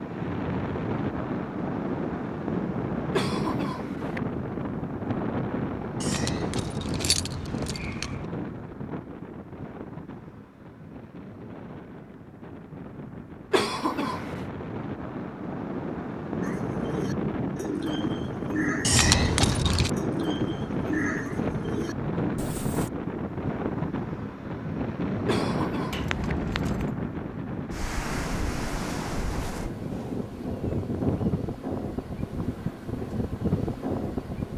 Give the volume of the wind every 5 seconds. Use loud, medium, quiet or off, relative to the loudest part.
loud, loud, medium, loud, loud, loud, loud.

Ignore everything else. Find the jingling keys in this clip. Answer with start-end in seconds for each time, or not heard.
6.0-8.2, 18.8-19.9, 25.9-26.9.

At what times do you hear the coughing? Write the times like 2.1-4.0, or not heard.
3.1-4.2, 13.5-14.4, 25.2-26.1.